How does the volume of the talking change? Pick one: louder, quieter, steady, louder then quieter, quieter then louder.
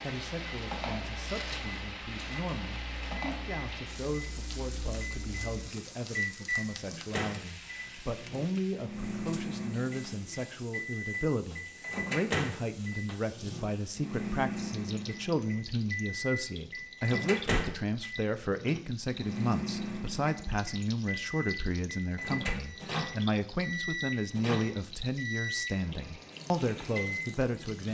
louder.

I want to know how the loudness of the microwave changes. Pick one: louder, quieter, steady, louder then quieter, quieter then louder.
louder.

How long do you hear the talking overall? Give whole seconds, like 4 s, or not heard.
28 s.